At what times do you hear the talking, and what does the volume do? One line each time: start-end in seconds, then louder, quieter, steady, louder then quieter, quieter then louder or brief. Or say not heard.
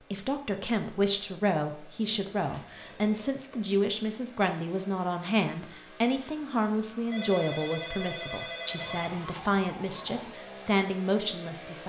0.0-11.8 steady.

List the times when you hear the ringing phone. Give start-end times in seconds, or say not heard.
2.3-3.3, 7.1-9.1.